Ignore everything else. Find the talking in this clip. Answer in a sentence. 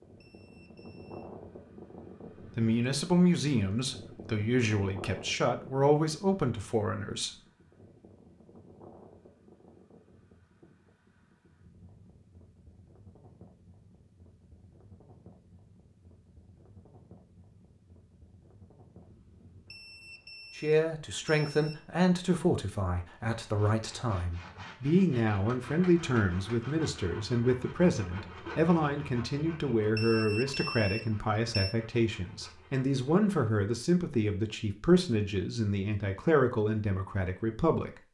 You can hear the talking from 2.4 to 7.3 s and from 20.6 to 38.1 s.